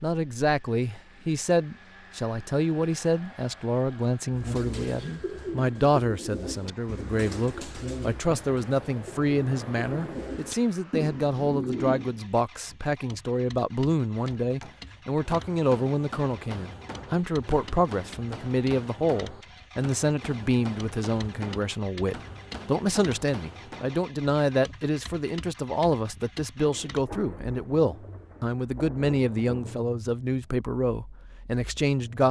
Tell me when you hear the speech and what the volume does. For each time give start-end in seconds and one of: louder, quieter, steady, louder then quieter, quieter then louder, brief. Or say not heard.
0.0-32.2 steady.